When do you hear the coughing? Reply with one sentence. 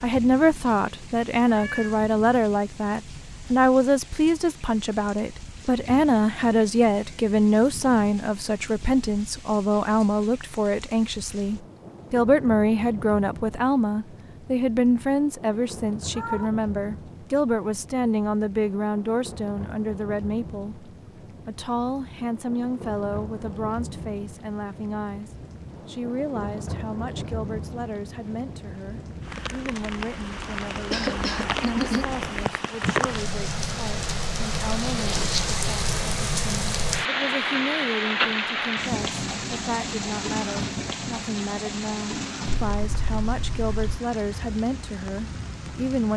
You can hear the coughing from 30.9 to 32.0 s.